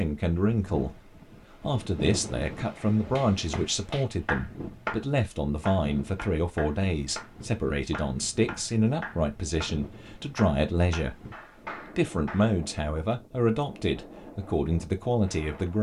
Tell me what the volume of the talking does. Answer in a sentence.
The loudness of the talking stays about the same.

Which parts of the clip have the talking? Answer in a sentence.
The talking can be heard from 0.0 to 11.3 s and from 11.9 to 15.7 s.